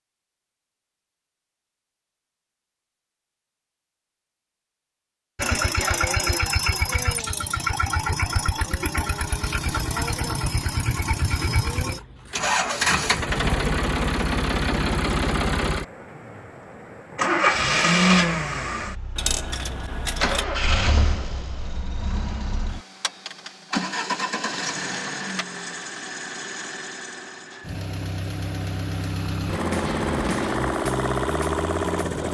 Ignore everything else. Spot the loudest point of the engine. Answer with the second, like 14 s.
18 s.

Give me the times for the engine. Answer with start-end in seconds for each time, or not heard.
5.3-32.2.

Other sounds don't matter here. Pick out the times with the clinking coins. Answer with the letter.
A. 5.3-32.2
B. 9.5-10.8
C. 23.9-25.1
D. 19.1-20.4
D.